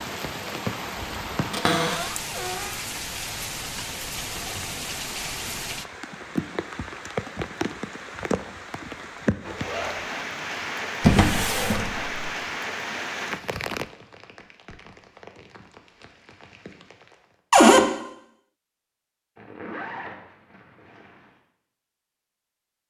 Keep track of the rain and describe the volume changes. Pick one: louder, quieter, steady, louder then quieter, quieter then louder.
quieter.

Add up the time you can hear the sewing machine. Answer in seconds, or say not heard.
not heard.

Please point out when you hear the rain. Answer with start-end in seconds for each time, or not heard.
0.0-17.4.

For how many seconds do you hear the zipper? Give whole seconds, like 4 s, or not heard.
3 s.